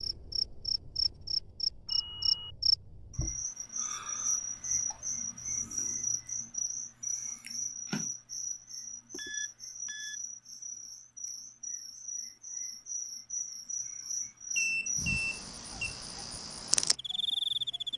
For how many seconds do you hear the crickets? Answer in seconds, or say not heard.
18 s.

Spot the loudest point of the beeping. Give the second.
15 s.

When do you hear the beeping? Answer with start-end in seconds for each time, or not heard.
1.9-2.5, 9.1-10.2, 14.6-15.9.